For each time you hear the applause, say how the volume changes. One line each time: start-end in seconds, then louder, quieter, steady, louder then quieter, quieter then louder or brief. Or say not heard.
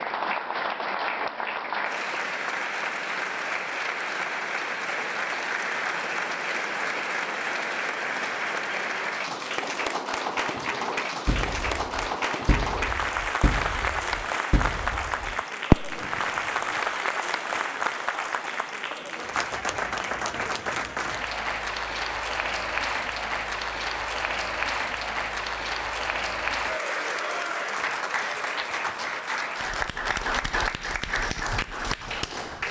0.0-32.6 steady.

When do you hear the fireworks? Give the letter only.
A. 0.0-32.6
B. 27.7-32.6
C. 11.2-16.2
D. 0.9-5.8
C.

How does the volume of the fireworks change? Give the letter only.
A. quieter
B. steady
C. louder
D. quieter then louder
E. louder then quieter
C.